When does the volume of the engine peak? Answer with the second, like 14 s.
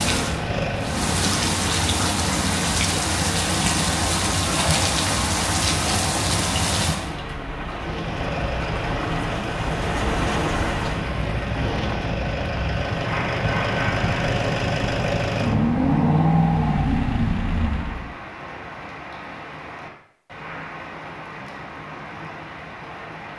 16 s.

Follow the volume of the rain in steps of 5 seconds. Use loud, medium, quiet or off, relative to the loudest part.
loud, loud, medium, quiet, quiet.